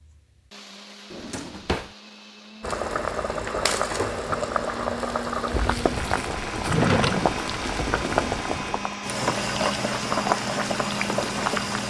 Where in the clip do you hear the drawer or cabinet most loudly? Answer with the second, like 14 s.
7 s.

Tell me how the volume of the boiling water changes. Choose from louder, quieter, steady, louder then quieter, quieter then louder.
steady.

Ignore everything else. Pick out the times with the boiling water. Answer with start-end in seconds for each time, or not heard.
2.6-11.8.